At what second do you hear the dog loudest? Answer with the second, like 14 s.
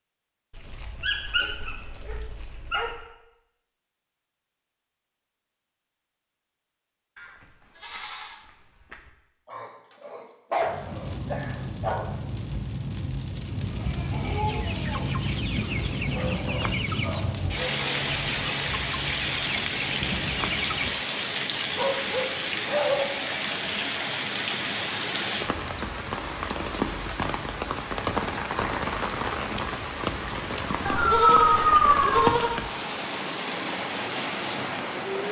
32 s.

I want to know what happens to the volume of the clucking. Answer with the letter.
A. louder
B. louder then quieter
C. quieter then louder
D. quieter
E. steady
E.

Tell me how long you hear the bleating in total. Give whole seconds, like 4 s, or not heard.
5 s.